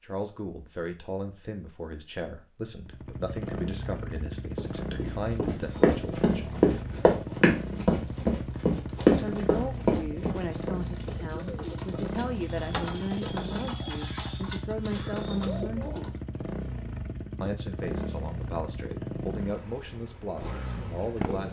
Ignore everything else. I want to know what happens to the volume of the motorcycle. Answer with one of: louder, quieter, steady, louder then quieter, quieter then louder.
steady.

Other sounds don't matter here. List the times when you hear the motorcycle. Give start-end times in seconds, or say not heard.
2.8-21.4.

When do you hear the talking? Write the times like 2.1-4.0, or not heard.
0.0-6.7, 9.1-16.1, 17.4-21.4.